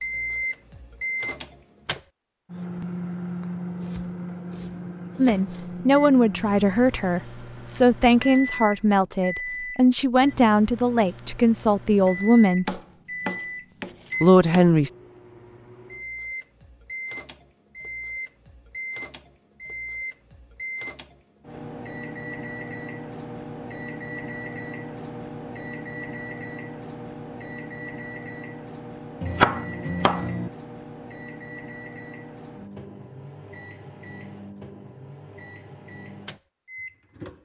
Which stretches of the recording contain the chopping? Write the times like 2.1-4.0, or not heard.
3.8-5.7, 12.7-14.8, 29.2-30.5.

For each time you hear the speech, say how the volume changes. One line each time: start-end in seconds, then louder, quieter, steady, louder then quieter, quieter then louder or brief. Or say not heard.
5.2-12.8 steady
14.2-14.9 brief.